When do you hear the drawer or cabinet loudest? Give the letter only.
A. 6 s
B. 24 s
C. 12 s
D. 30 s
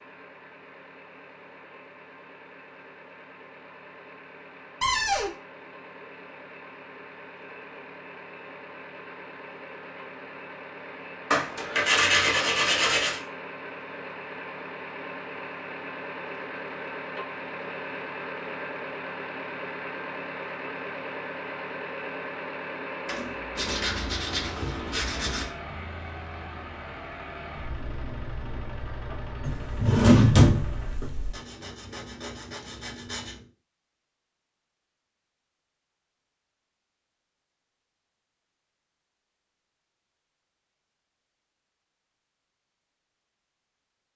D.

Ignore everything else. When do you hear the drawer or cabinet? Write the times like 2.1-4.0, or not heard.
4.8-5.3, 23.1-24.1, 29.4-31.3.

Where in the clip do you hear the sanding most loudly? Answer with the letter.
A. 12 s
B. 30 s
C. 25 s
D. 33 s
A.